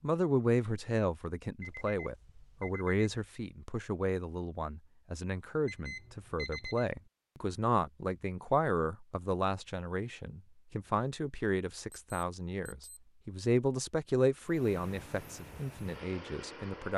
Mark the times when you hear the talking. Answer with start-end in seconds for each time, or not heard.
0.0-16.9.